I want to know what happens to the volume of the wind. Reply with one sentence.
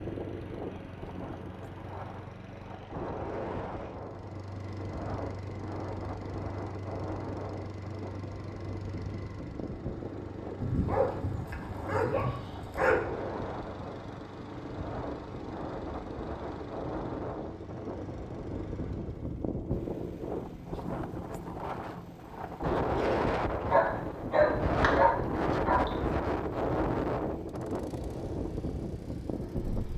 The loudness of the wind goes up.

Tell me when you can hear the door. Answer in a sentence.
The door can't be heard in this clip.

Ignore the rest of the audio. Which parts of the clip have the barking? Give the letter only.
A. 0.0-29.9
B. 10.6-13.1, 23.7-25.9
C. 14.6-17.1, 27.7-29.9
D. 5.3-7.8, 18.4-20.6
B.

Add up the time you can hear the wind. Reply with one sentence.
The wind can be heard for 30 seconds in total.